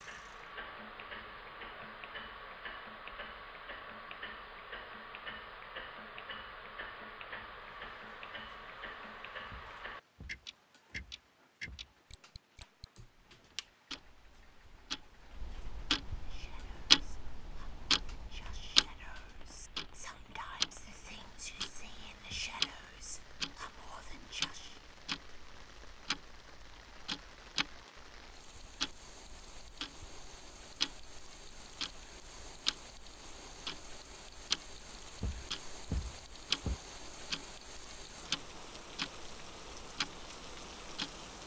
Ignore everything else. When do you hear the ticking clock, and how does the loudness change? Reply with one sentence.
The ticking clock can be heard from 0.0 to 41.4 s, getting louder then quieter.